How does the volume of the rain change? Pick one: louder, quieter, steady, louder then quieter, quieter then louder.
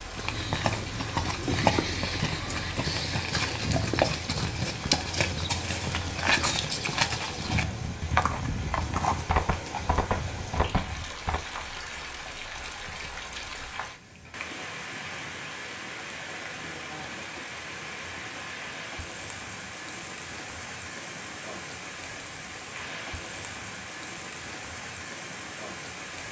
steady.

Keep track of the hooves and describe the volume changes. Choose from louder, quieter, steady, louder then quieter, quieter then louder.
steady.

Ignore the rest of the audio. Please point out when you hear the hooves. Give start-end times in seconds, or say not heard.
0.1-11.4.